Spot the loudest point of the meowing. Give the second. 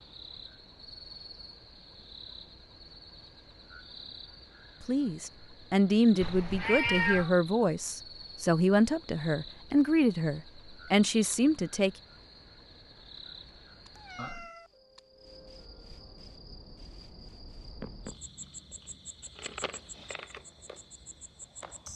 7 s.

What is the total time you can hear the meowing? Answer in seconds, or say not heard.
2 s.